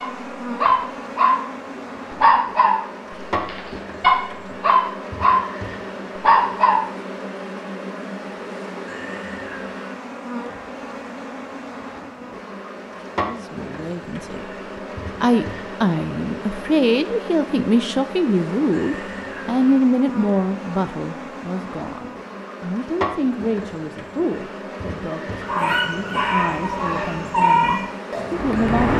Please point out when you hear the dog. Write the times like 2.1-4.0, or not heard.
0.0-6.8, 25.4-28.9.